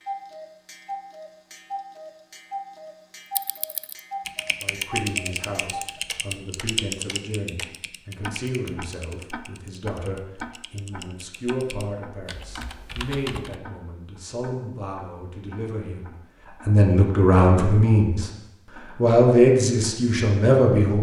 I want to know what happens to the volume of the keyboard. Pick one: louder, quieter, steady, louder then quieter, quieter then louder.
quieter then louder.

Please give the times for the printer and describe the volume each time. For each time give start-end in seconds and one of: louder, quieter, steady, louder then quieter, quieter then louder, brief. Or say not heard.
not heard.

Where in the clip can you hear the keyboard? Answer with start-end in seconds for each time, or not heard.
3.4-13.6.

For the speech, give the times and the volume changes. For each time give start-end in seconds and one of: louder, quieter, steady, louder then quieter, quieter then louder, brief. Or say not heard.
4.6-18.3 louder
18.9-20.9 brief.